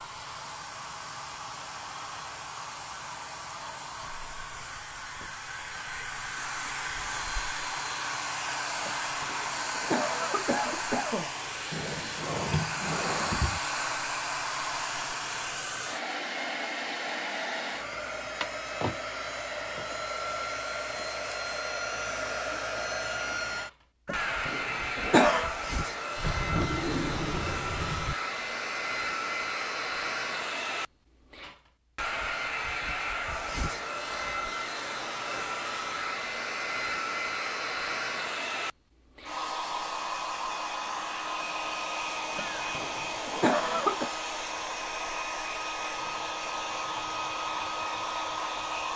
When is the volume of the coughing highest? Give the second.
25 s.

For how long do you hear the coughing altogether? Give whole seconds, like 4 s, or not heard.
6 s.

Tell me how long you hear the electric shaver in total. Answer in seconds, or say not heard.
not heard.